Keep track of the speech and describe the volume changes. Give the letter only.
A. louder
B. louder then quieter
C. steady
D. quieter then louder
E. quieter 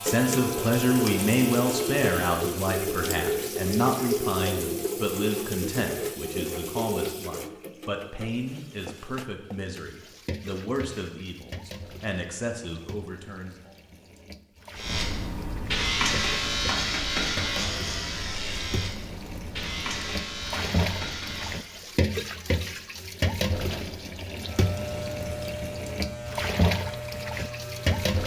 E.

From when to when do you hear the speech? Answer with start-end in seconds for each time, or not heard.
0.0-13.7.